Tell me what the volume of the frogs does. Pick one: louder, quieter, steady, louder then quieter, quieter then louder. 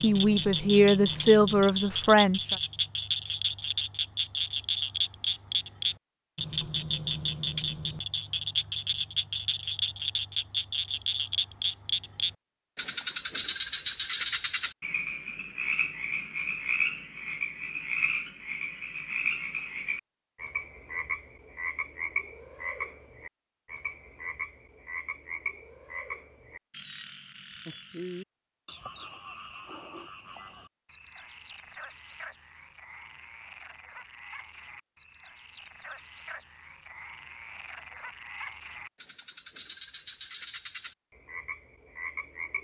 quieter.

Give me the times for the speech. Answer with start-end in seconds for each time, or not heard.
0.0-2.5.